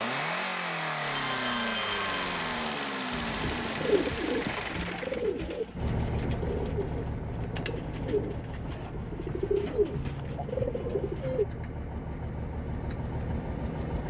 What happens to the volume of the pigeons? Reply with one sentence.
The volume of the pigeons goes down, then up.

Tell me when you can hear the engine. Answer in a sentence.
The engine can be heard from 0.0 to 14.0 s.